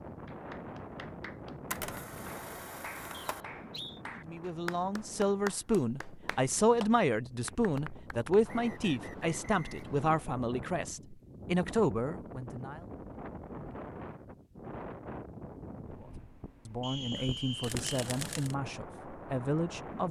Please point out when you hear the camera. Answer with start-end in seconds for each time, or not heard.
1.7-3.5, 17.1-18.6.